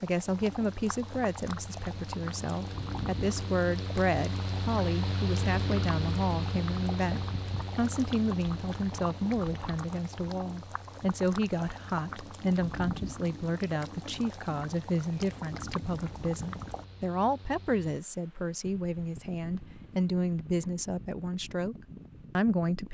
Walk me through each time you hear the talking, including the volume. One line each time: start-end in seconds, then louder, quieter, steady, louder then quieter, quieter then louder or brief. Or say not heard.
0.0-21.8 steady
22.4-22.8 brief.